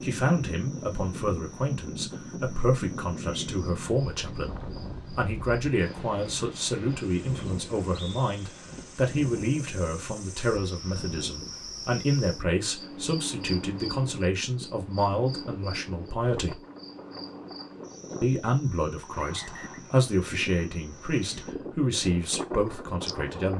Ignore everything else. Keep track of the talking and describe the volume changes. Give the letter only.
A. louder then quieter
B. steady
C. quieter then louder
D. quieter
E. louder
B.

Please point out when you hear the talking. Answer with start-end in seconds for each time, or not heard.
0.0-4.5, 5.2-16.6, 18.2-23.5.